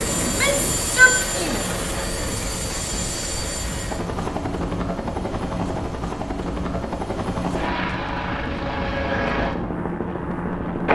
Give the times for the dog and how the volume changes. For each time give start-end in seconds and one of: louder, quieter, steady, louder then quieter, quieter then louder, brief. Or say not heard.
not heard.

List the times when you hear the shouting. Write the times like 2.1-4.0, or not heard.
0.2-1.7.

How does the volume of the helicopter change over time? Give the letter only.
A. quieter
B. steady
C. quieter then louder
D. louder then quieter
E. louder
B.